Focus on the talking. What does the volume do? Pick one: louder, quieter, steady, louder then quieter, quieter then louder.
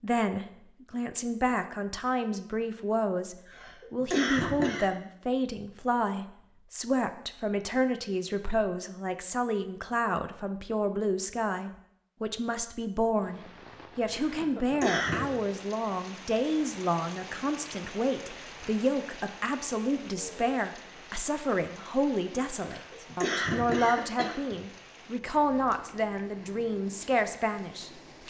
steady.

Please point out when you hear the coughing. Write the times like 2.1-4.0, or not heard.
3.5-4.9, 14.3-15.2, 22.6-24.6.